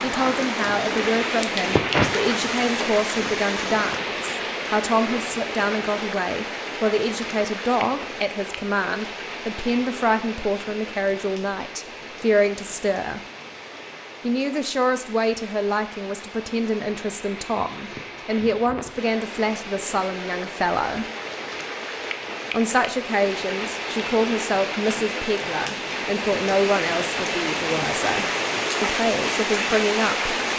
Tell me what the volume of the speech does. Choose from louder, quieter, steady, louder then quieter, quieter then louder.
steady.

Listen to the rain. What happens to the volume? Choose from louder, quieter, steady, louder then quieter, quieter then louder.
quieter then louder.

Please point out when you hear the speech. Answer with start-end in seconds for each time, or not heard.
0.0-13.2, 14.2-21.1, 22.5-30.4.